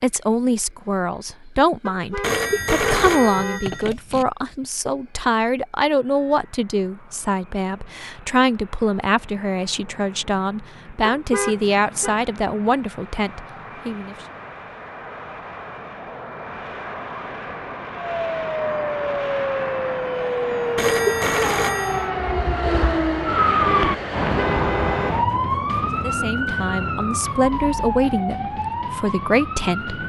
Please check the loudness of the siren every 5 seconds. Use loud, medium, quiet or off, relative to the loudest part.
off, off, off, loud, loud, loud.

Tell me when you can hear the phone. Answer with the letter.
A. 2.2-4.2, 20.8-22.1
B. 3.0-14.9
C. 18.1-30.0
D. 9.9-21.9
A.